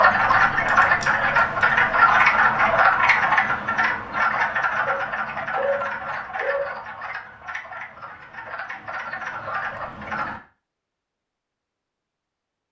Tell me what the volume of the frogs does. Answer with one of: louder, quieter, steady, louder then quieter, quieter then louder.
quieter.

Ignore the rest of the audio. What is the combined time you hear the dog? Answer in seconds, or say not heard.
2 s.